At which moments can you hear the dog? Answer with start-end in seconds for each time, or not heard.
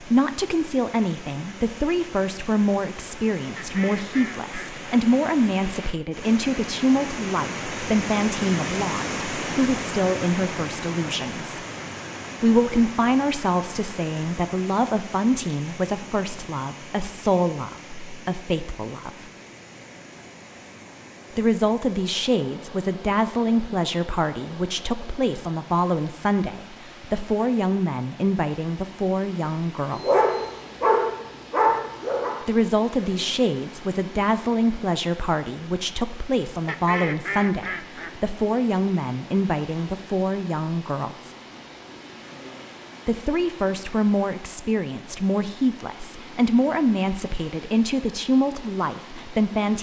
29.9-32.4.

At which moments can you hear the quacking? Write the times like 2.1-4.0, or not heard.
3.5-4.8, 36.6-38.2.